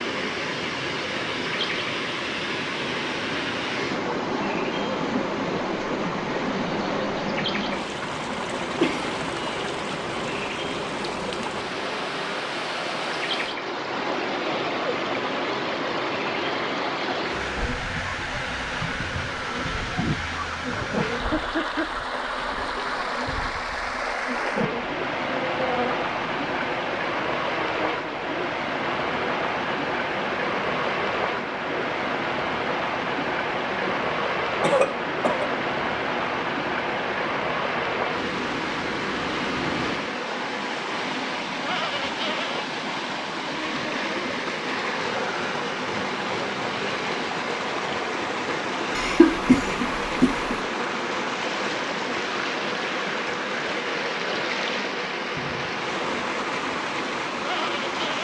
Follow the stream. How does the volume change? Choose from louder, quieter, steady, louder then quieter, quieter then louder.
steady.